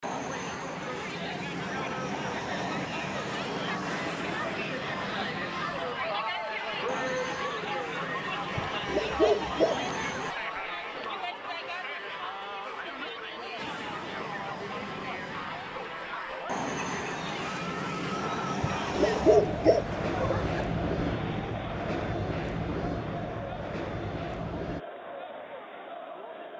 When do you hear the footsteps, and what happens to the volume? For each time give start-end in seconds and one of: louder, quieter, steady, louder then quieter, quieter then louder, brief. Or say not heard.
not heard.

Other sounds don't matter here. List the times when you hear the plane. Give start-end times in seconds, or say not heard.
0.0-10.3, 13.6-24.8.